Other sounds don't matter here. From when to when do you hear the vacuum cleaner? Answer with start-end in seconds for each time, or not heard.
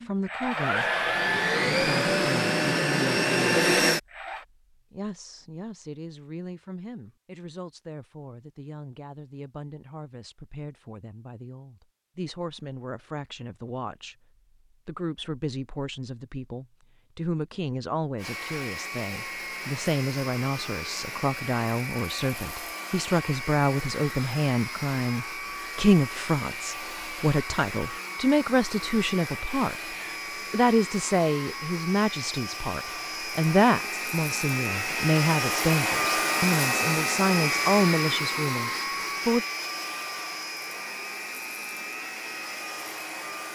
0.0-4.5, 18.1-43.5.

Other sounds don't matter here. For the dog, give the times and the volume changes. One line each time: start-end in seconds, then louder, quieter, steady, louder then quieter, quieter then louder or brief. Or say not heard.
not heard.